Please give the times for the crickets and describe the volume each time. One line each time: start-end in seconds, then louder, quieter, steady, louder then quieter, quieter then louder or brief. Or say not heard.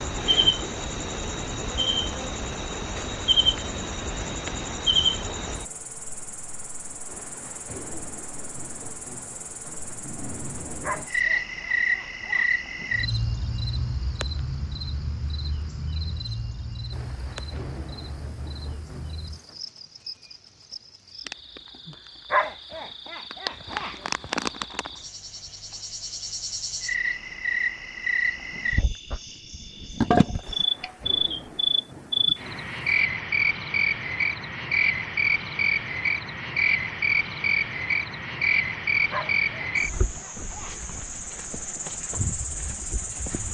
0.0-43.4 quieter then louder.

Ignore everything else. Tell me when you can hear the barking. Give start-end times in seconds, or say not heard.
10.8-12.5, 22.3-24.3, 39.1-40.8.